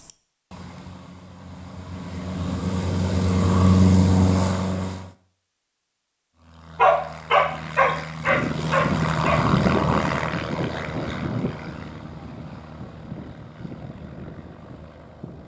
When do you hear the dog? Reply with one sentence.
The dog can be heard from 6.8 to 9.4 s.